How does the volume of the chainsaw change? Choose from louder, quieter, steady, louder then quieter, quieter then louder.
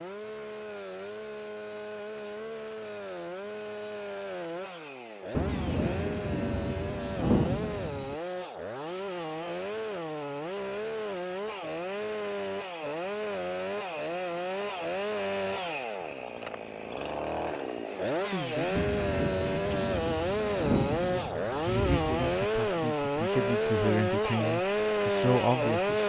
louder.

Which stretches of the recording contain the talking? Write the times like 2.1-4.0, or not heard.
18.2-19.7, 21.0-26.0.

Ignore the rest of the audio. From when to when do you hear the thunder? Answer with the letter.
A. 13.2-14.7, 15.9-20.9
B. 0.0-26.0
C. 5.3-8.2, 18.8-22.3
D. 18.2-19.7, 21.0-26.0
C.